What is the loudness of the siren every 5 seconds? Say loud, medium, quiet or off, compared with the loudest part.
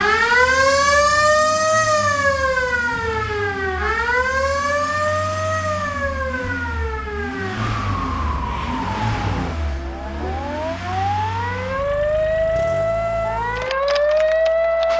loud, medium, loud.